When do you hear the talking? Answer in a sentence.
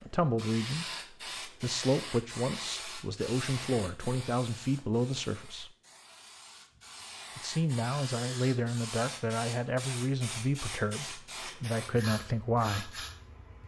The talking can be heard from 0.0 to 0.8 s, from 1.4 to 5.7 s and from 7.3 to 13.0 s.